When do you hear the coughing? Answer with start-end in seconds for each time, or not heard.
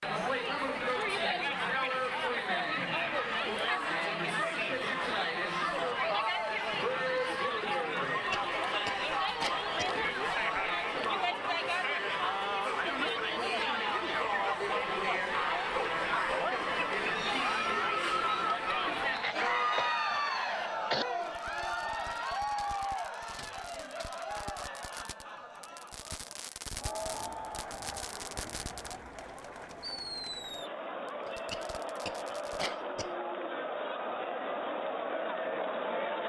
8.1-9.9, 19.1-21.1, 31.2-33.1.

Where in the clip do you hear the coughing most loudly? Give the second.
21 s.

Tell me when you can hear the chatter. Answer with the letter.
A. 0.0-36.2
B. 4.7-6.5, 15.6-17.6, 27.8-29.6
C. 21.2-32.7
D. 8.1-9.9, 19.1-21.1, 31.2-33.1
A.